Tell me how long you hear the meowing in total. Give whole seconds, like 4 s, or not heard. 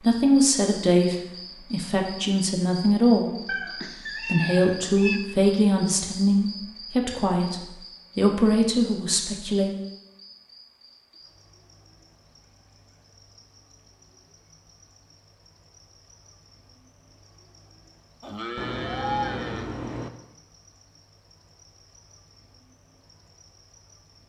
3 s.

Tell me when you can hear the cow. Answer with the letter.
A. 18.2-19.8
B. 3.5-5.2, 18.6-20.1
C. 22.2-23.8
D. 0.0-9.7
A.